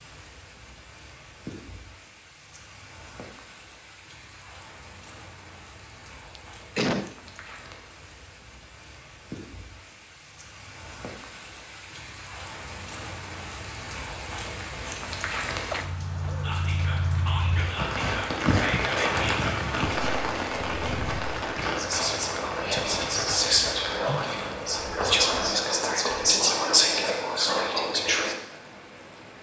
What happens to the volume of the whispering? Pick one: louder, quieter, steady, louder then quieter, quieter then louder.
louder.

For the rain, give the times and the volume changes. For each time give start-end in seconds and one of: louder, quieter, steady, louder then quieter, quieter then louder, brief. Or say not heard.
0.0-29.3 louder then quieter.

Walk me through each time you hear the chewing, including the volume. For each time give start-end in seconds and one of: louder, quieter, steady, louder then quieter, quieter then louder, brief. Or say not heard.
not heard.